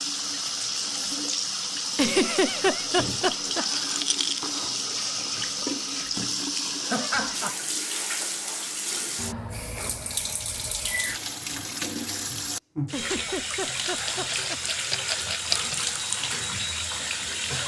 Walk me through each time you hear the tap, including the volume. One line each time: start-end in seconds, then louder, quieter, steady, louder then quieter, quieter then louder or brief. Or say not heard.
0.0-17.6 steady.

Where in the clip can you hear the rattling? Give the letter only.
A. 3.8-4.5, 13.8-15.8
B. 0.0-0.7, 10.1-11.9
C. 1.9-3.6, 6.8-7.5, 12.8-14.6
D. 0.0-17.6
A.